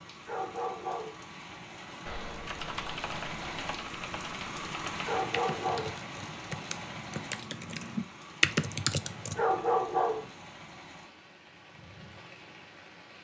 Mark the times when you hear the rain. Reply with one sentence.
The rain can be heard from 0.0 to 13.1 s.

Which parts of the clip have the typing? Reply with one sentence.
The typing can be heard from 1.9 to 9.4 s.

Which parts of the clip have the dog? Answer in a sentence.
You can hear the dog from 0.2 to 1.2 s, from 5.0 to 6.0 s and from 9.3 to 10.3 s.